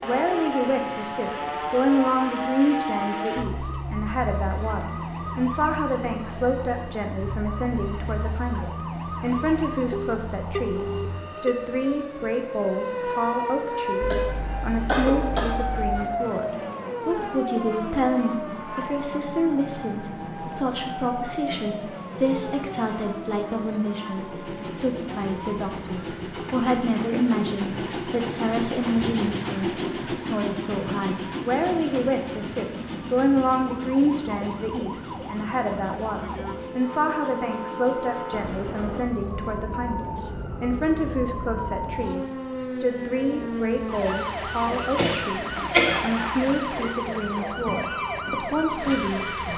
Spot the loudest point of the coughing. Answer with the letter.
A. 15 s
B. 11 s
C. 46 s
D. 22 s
C.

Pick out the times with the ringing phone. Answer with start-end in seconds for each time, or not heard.
9.9-11.6, 38.3-39.1.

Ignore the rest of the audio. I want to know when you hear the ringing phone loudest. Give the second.
11 s.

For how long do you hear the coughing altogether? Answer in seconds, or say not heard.
3 s.